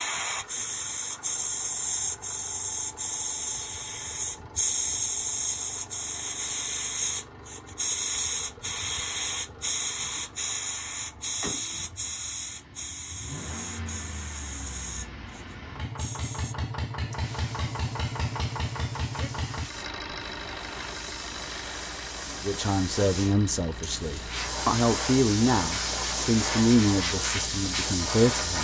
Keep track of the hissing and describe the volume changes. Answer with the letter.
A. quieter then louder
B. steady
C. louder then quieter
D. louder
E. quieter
A.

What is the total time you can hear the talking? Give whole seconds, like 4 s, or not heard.
6 s.